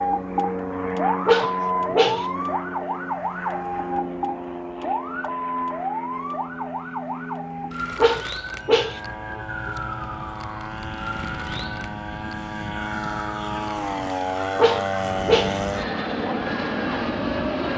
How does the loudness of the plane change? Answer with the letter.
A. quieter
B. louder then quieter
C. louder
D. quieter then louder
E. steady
D.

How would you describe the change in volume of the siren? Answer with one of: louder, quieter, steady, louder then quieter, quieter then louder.
quieter.